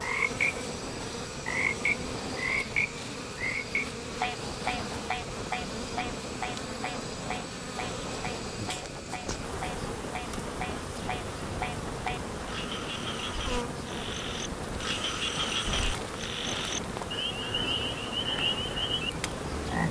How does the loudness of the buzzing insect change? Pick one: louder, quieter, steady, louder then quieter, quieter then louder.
steady.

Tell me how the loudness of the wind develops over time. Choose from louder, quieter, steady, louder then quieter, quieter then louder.
steady.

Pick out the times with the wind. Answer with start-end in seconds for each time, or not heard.
0.0-19.8.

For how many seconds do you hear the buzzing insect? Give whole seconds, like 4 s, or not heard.
20 s.